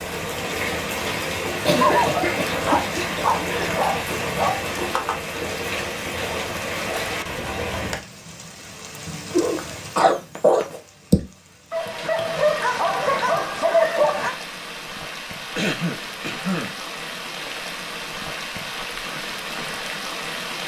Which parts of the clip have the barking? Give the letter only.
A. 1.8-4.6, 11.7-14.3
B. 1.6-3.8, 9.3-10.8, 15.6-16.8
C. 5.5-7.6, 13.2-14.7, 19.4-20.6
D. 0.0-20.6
A.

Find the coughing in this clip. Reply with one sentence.
You can hear the coughing from 1.6 to 3.8 s, from 9.3 to 10.8 s and from 15.6 to 16.8 s.